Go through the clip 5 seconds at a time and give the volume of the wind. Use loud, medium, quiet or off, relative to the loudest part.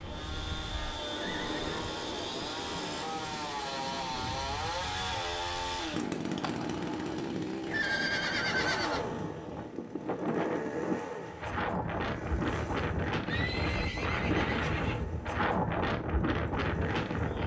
medium, medium, loud, loud.